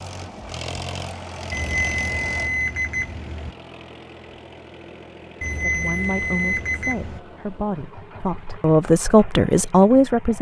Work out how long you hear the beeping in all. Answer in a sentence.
You can hear the beeping for 4 seconds altogether.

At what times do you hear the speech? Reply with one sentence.
You can hear the speech from 5.6 to 10.3 s.